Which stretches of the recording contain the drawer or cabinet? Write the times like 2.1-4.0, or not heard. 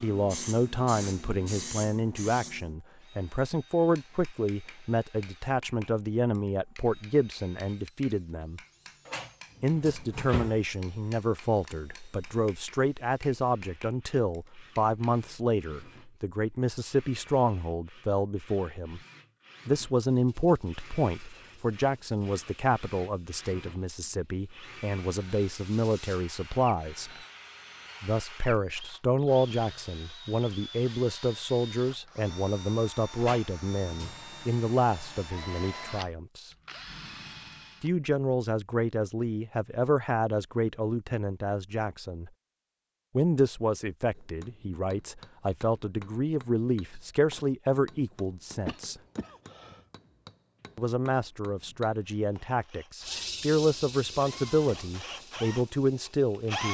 9.1-10.6, 33.2-34.2.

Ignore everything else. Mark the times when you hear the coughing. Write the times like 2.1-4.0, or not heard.
48.6-49.8.